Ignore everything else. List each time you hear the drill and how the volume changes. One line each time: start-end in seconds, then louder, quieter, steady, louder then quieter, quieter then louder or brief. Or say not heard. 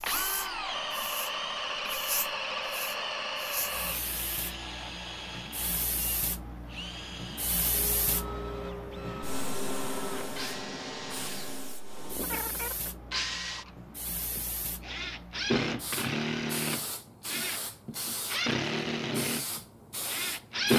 0.0-20.7 quieter then louder.